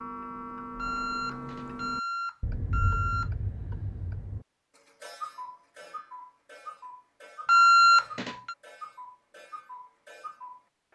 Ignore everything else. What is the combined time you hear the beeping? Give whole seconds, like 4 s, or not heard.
4 s.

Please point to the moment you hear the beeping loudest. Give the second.
8 s.